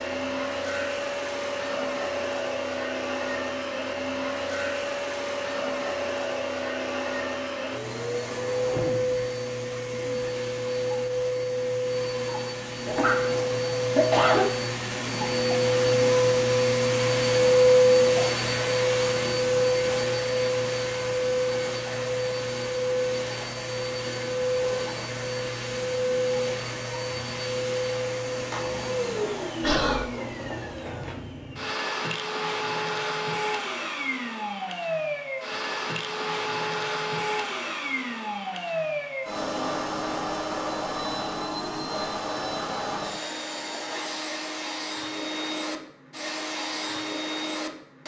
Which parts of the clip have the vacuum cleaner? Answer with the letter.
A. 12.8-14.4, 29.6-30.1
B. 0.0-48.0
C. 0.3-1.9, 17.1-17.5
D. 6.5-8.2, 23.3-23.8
B.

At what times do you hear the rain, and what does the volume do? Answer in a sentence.
The rain can't be heard in this clip.